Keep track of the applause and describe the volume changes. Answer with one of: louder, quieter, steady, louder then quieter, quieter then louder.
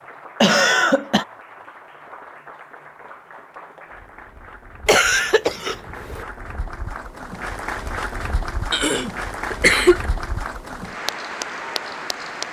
louder.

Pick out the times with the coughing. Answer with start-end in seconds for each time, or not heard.
0.4-1.2, 4.8-6.2, 8.7-10.1.